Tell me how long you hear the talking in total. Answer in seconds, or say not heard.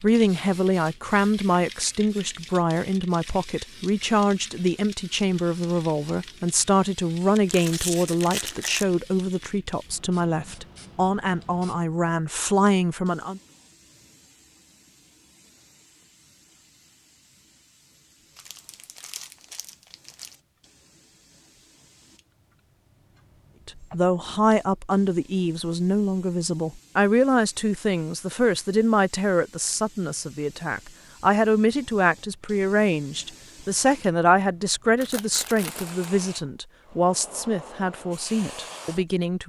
29 s.